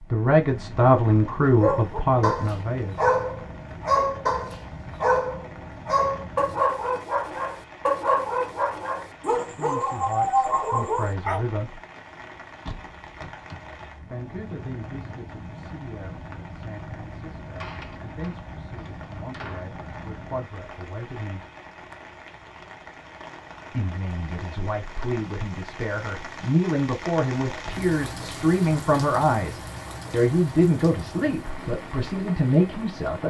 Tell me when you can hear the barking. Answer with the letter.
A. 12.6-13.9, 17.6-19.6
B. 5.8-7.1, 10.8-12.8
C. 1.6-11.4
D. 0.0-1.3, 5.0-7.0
C.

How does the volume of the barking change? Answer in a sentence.
The volume of the barking stays about the same.